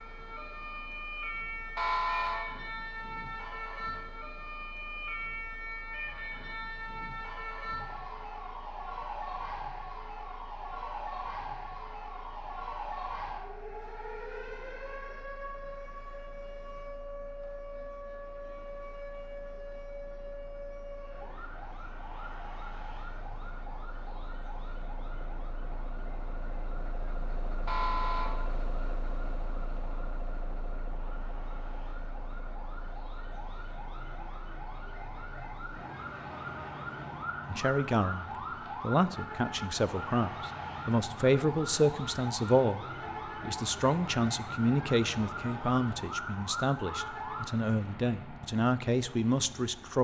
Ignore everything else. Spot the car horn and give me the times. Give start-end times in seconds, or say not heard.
1.8-2.6, 27.6-28.5.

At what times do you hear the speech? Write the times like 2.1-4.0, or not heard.
37.5-50.0.